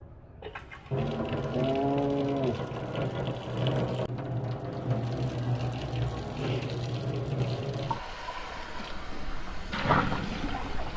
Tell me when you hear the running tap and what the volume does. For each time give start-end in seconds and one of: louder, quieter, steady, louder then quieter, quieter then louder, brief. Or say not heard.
0.0-10.9 steady.